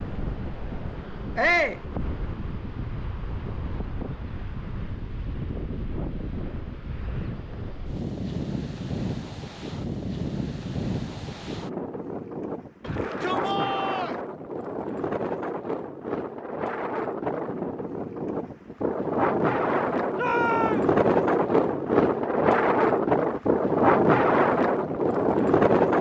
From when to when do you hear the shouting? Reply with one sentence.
You can hear the shouting from 1.4 to 1.8 s, from 12.8 to 14.2 s and from 20.1 to 20.9 s.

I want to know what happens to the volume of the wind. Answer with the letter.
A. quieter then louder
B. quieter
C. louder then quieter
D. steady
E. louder
E.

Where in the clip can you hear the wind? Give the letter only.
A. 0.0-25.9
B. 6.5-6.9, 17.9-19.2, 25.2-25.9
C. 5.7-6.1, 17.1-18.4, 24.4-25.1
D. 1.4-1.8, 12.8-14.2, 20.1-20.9
A.